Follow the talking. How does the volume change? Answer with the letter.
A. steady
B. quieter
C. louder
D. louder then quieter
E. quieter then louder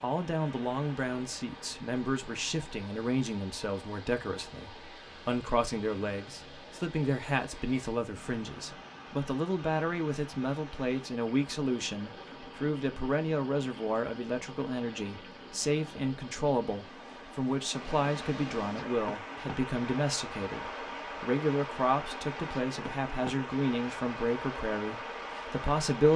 A.